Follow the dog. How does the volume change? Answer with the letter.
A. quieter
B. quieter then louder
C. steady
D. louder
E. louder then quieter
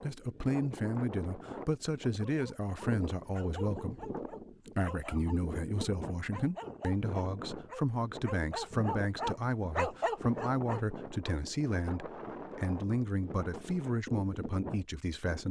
D.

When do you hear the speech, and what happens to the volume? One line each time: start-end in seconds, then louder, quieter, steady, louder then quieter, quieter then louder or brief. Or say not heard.
0.0-15.4 steady.